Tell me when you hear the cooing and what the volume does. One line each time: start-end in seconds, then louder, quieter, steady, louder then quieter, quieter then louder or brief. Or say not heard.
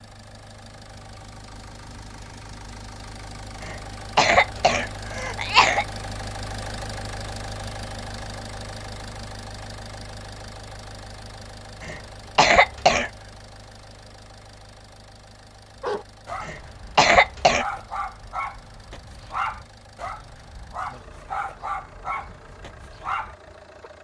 not heard.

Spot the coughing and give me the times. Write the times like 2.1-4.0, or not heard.
3.6-5.8, 11.8-13.1, 16.4-17.6.